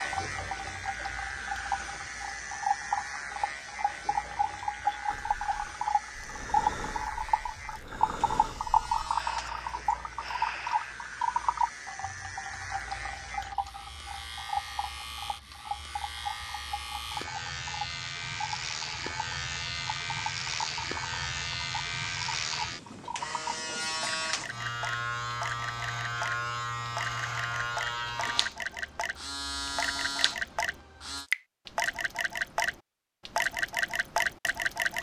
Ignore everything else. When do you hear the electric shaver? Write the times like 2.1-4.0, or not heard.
0.0-31.3.